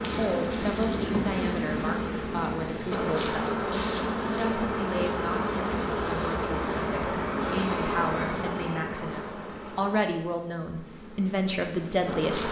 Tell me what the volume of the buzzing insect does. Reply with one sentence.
The loudness of the buzzing insect goes down.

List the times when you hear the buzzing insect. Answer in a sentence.
You can hear the buzzing insect from 0.0 to 12.4 s.